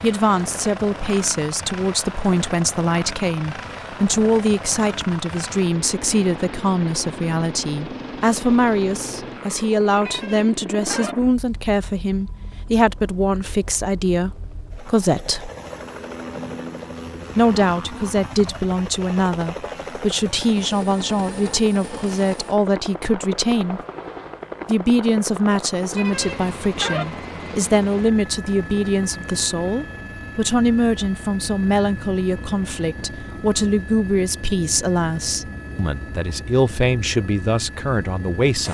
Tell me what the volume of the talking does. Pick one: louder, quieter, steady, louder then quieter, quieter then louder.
steady.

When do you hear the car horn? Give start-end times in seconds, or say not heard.
10.1-11.2, 25.9-27.1.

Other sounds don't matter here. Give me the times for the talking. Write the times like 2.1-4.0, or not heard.
0.0-15.5, 17.4-23.8, 24.6-38.6.